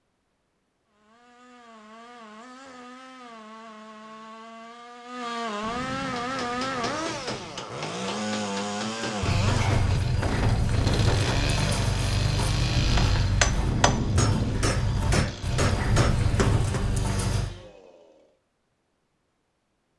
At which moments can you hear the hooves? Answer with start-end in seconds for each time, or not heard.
9.2-17.5.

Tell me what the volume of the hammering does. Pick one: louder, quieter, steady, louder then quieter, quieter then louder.
louder.